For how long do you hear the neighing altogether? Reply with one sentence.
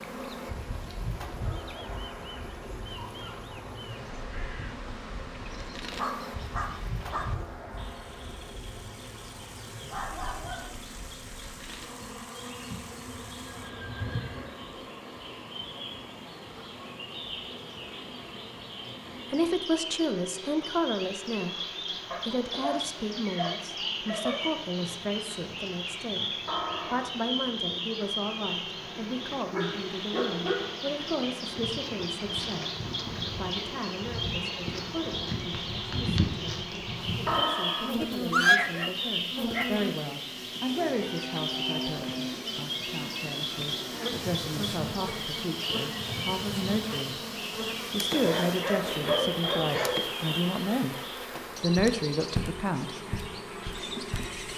The neighing can be heard for 4 seconds in total.